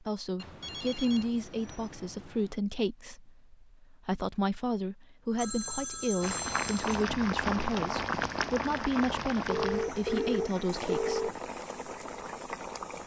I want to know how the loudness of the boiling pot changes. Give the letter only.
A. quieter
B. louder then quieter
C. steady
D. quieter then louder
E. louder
A.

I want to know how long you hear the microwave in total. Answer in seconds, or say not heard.
not heard.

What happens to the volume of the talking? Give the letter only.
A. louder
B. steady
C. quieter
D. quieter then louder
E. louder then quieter
B.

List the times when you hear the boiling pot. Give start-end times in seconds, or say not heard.
6.2-13.0.